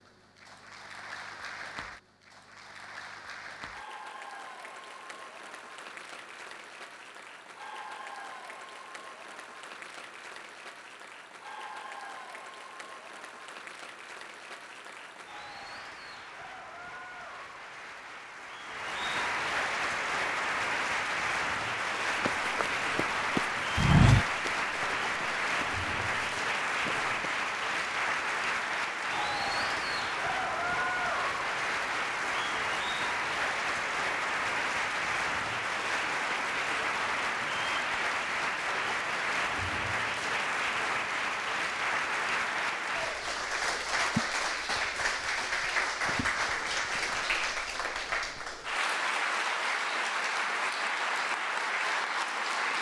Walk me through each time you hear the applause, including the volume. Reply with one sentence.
You can hear the applause from 0.0 to 52.7 s, getting louder.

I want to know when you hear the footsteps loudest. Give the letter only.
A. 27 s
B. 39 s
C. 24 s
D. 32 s
C.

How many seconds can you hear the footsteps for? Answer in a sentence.
You can hear the footsteps for 5 seconds altogether.